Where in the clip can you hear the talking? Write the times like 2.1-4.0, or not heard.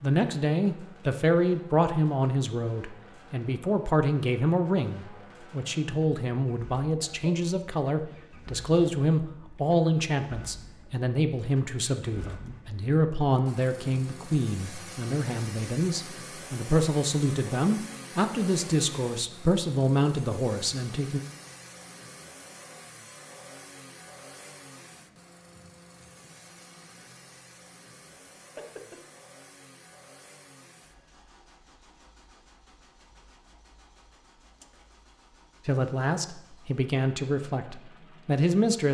0.0-21.2, 35.6-38.8.